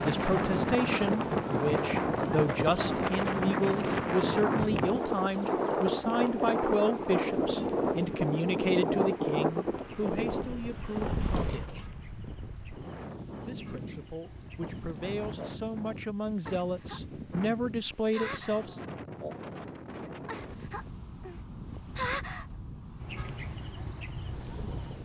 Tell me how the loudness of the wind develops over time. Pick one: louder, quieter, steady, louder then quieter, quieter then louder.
quieter.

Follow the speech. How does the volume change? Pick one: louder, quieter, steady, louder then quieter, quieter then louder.
quieter then louder.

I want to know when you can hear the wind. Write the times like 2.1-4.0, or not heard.
0.0-25.0.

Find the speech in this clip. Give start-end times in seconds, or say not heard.
0.0-11.8, 13.4-18.8.